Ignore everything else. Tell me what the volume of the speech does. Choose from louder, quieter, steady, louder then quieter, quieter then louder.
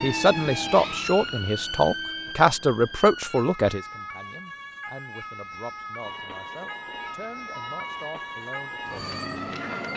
quieter.